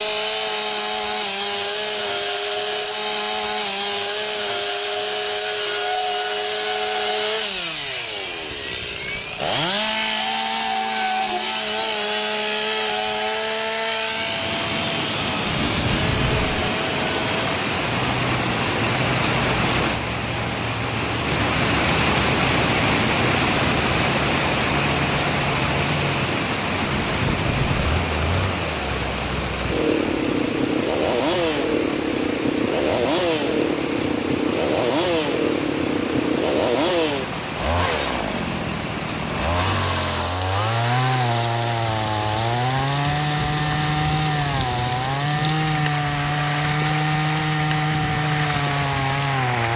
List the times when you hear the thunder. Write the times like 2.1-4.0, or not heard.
15.4-16.7, 26.8-27.9.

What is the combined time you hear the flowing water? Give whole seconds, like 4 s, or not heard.
36 s.